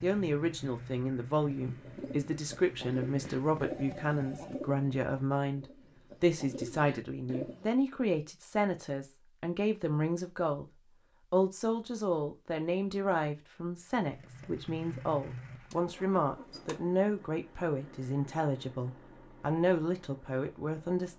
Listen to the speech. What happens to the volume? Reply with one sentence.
The loudness of the speech stays about the same.